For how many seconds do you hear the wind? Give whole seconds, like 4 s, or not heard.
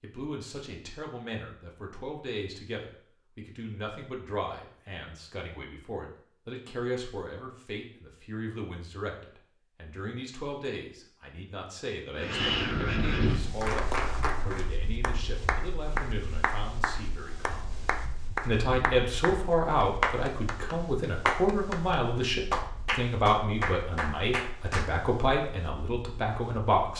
15 s.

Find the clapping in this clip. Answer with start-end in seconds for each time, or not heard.
13.6-24.9.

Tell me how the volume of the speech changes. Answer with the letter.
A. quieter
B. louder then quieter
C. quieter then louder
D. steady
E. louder
E.